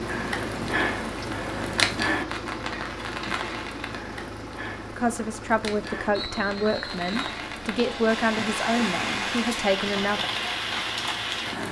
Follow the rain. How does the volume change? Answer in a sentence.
The loudness of the rain goes down, then up.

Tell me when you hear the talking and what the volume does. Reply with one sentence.
The talking can be heard from 4.9 to 10.2 s, at a steady volume.